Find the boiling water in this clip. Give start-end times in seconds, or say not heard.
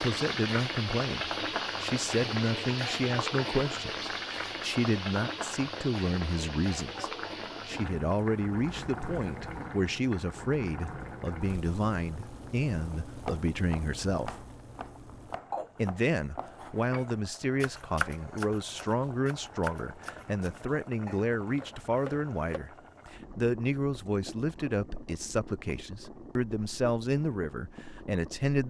0.0-28.6.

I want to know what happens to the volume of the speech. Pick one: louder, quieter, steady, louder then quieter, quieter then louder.
steady.